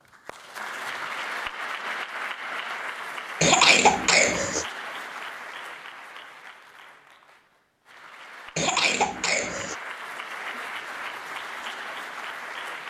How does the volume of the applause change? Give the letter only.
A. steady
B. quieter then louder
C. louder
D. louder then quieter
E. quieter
B.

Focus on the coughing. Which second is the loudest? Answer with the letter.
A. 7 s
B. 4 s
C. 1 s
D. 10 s
B.